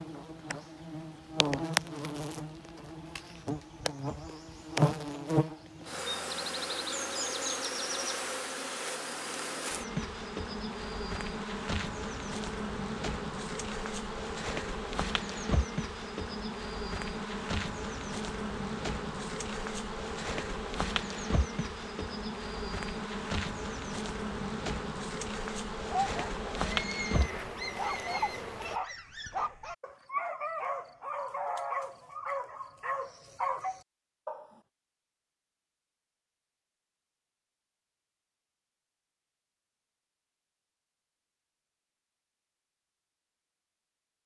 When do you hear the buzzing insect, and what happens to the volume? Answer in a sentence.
You can hear the buzzing insect from 0.0 to 28.8 s, at a steady volume.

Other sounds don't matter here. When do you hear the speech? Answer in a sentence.
The speech can't be heard in this clip.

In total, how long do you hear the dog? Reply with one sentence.
You can hear the dog for 9 seconds altogether.